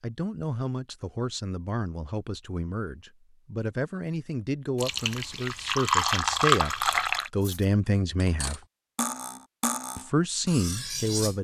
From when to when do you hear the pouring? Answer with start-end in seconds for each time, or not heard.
4.8-7.3.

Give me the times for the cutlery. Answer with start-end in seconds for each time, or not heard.
7.4-11.3.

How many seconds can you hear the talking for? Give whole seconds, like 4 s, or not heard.
10 s.